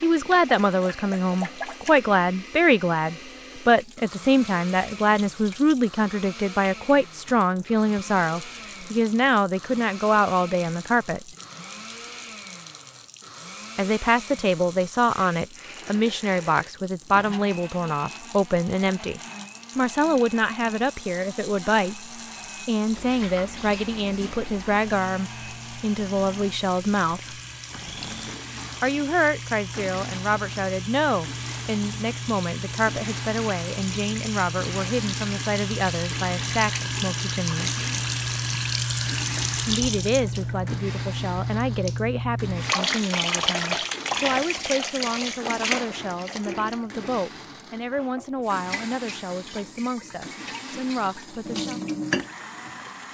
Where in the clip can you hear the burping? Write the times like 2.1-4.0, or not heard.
not heard.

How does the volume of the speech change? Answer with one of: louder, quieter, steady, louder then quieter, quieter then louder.
quieter.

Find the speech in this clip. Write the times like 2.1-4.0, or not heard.
0.0-11.2, 13.8-27.4, 28.8-37.8, 39.6-51.8.